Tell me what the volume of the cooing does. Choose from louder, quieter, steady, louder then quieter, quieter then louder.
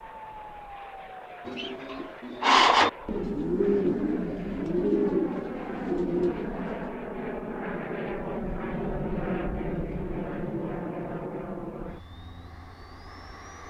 quieter.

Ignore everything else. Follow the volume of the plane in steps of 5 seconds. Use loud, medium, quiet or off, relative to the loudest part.
medium, loud, loud.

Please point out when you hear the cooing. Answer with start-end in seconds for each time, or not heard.
1.4-6.9.